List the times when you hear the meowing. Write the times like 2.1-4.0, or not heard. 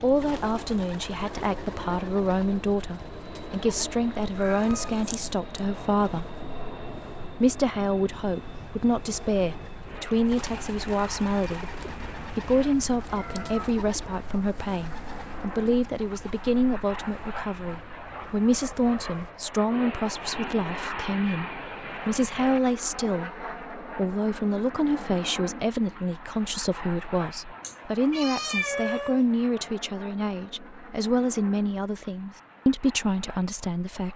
4.3-5.2, 11.8-13.8, 27.6-29.2.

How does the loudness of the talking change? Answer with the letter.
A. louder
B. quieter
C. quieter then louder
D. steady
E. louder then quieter
D.